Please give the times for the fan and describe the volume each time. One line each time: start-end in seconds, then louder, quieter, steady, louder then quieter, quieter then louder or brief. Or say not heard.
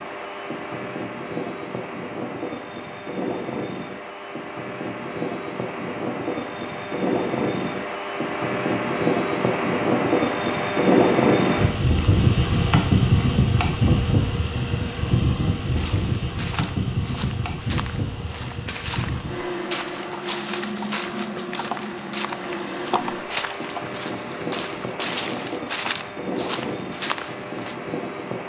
0.0-28.4 louder then quieter.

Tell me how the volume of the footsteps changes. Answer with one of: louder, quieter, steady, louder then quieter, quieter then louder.
louder.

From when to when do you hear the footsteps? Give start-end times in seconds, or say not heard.
15.8-27.8.